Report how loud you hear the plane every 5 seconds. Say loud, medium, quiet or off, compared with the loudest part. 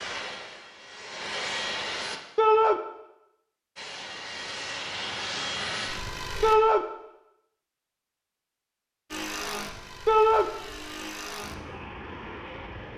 loud, loud, medium.